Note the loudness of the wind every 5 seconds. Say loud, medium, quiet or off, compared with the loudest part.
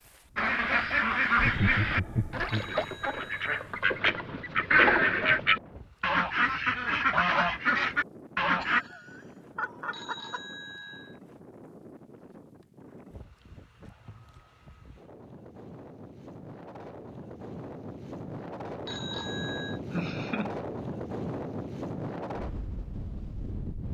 quiet, quiet, quiet, loud, loud.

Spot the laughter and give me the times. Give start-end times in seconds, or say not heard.
1.4-2.8, 8.6-10.4, 19.9-20.5.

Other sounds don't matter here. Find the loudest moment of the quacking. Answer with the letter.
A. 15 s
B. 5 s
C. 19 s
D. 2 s
B.